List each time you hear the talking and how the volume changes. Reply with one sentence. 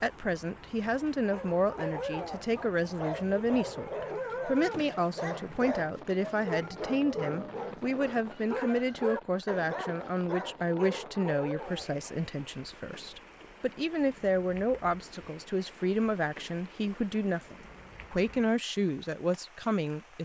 You can hear the talking from 0.0 to 20.1 s, at a steady volume.